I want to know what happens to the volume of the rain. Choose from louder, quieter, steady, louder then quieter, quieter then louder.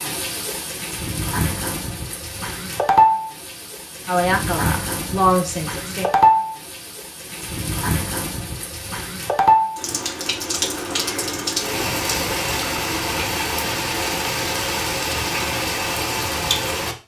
steady.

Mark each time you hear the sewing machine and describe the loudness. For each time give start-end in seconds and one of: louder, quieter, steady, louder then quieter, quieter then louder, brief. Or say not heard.
not heard.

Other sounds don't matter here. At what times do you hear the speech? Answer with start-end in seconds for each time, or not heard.
4.0-6.1.